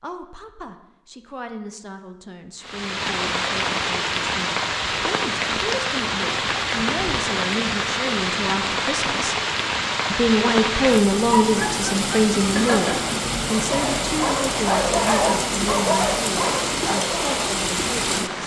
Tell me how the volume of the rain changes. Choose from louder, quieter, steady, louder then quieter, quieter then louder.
steady.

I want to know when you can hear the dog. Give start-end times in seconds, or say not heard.
11.3-17.5.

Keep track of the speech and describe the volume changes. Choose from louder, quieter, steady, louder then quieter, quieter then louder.
louder then quieter.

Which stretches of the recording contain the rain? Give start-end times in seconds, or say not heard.
2.6-18.4.